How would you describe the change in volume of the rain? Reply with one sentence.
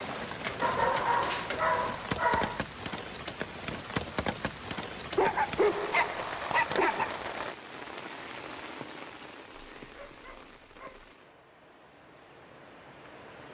The loudness of the rain goes down.